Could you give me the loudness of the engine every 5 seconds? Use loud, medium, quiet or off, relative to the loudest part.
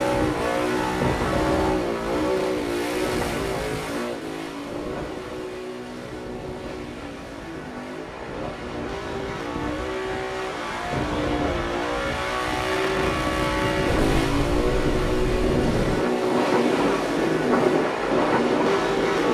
loud, medium, loud, loud.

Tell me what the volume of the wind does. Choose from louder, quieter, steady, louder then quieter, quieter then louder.
quieter then louder.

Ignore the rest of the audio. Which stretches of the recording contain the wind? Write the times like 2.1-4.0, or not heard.
0.0-19.3.